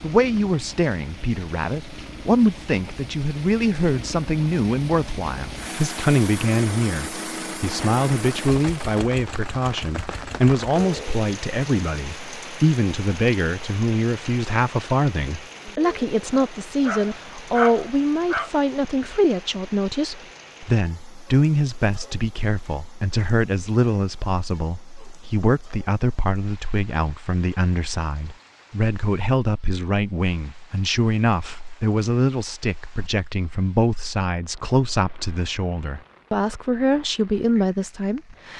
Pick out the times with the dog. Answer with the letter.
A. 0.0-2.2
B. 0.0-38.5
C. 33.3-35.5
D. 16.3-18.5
D.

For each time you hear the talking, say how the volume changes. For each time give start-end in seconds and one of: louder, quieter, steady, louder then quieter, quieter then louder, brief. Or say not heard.
0.0-38.5 steady.